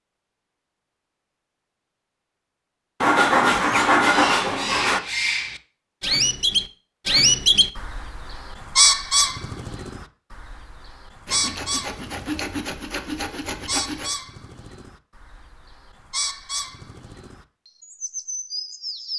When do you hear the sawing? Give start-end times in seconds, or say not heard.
3.0-5.0, 11.2-14.1.